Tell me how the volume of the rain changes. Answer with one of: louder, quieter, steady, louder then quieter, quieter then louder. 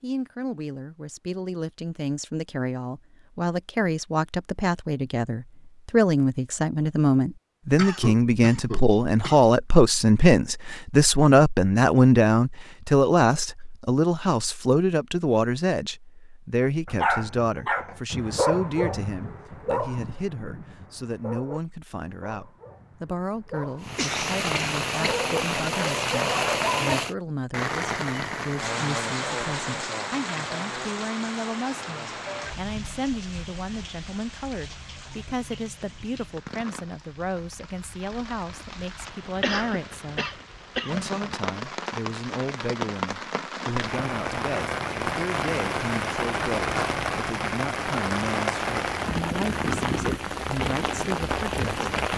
quieter then louder.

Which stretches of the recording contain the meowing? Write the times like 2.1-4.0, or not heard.
not heard.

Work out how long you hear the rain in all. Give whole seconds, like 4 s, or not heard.
28 s.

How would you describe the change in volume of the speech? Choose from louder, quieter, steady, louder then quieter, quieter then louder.
quieter.